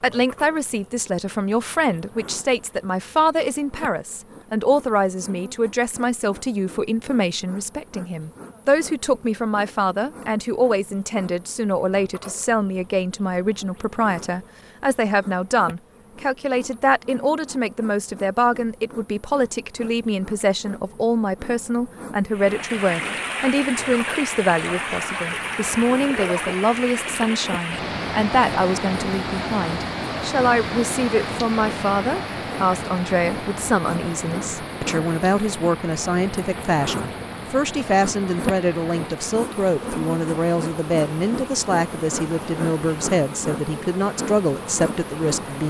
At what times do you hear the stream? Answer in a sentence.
You can hear the stream from 22.3 to 45.6 s.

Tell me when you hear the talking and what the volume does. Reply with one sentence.
The talking can be heard from 0.0 to 45.6 s, at a steady volume.